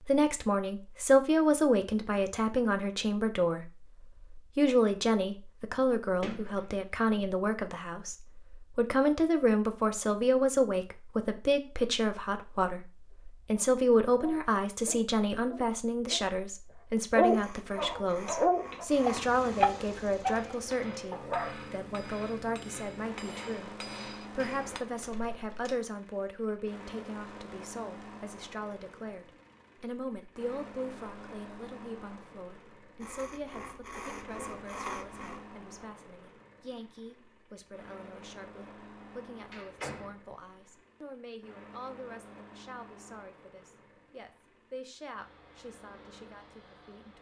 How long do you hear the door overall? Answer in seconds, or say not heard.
3 s.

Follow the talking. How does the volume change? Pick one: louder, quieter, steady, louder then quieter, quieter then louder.
quieter.